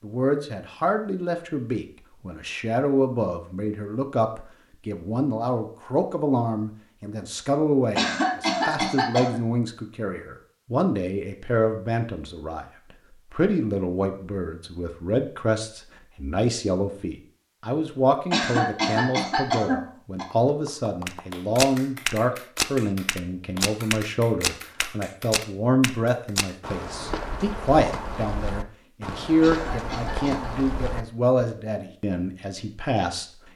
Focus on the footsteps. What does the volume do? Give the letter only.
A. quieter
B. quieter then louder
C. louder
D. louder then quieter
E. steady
A.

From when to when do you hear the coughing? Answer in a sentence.
The coughing can be heard from 8.0 to 9.4 s, from 18.3 to 20.2 s and from 29.4 to 30.5 s.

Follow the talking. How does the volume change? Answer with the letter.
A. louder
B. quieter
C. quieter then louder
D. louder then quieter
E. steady
E.